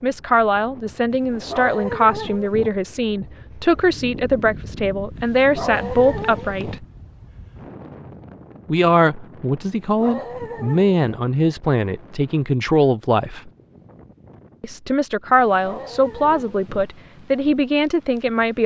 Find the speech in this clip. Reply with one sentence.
You can hear the speech from 0.0 to 6.8 s, from 8.7 to 13.5 s and from 14.6 to 18.6 s.